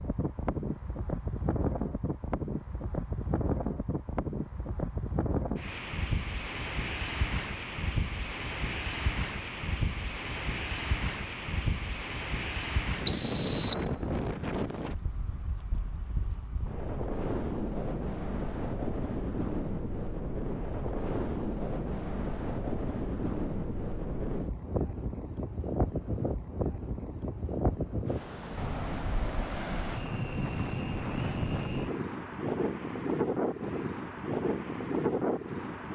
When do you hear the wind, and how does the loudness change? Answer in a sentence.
The wind can be heard from 0.0 to 35.9 s, at a steady volume.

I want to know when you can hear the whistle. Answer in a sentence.
You can hear the whistle from 13.1 to 13.8 s.